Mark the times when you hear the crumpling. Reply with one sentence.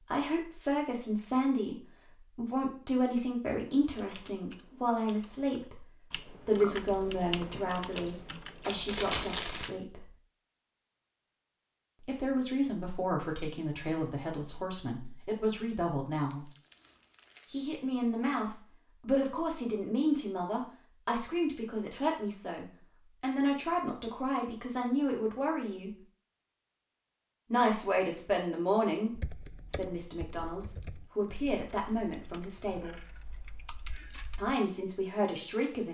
The crumpling can be heard from 8.8 to 9.7 s, from 16.3 to 17.6 s and from 30.6 to 32.0 s.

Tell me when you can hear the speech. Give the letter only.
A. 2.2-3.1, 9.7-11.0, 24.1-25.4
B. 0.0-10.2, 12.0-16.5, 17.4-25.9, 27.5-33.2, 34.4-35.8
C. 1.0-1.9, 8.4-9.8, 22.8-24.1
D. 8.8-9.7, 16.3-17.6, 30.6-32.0
B.